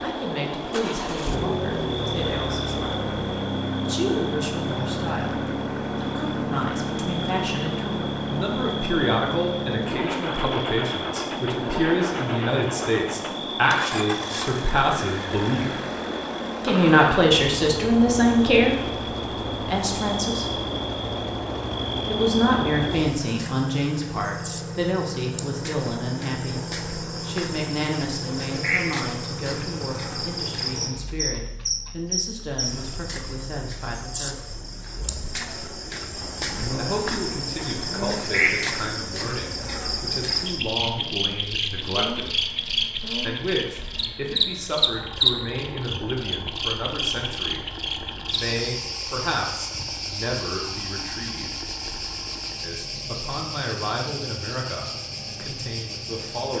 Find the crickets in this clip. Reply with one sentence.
The crickets can be heard from 0.0 to 56.5 s.